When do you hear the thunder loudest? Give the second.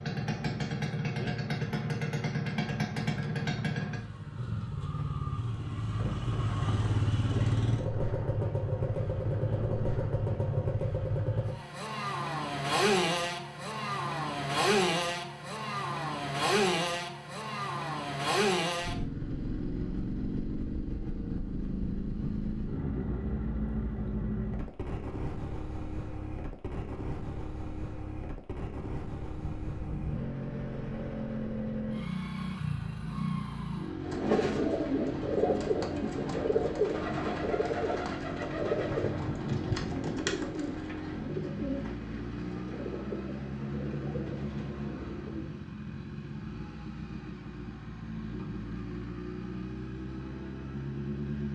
40 s.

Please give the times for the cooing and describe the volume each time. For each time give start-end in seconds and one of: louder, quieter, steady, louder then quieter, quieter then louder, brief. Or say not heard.
34.0-45.6 quieter.